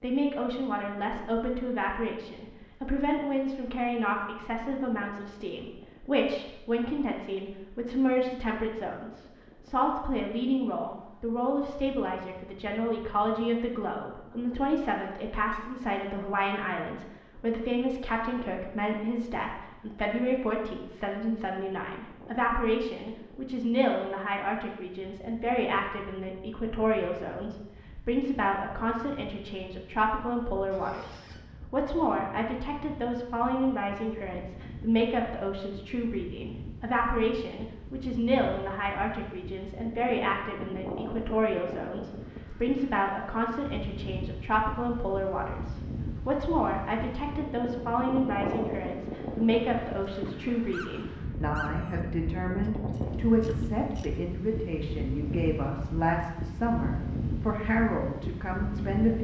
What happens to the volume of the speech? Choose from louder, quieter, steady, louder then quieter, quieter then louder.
steady.